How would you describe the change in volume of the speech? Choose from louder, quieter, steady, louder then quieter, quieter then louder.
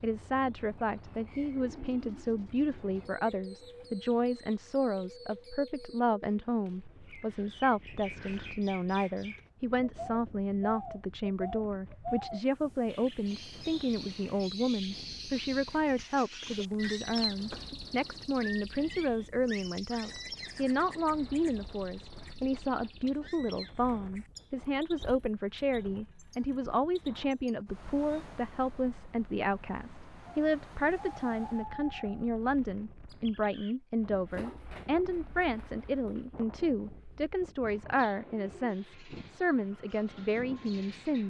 steady.